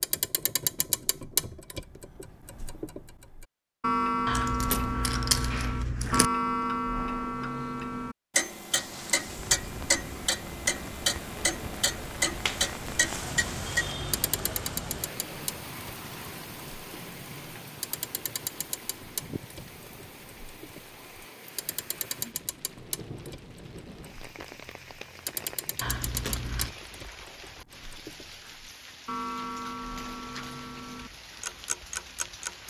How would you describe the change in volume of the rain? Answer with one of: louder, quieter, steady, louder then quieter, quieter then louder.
quieter.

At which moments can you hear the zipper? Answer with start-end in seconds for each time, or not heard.
not heard.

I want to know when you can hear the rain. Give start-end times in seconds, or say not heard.
8.7-32.6.